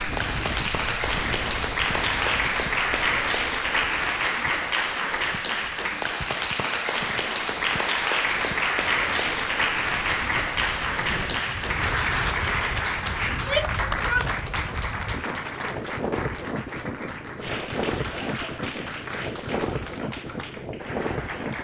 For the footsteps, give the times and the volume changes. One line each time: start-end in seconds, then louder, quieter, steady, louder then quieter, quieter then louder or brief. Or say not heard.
not heard.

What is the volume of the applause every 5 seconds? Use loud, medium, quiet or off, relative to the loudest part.
loud, loud, loud, medium, quiet.